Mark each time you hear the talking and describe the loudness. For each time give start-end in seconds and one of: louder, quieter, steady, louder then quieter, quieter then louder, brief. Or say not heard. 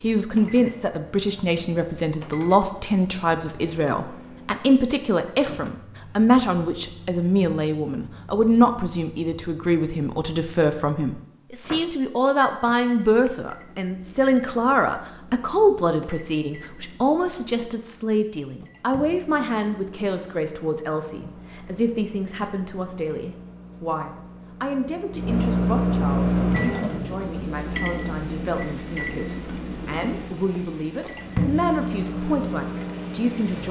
0.0-33.6 quieter.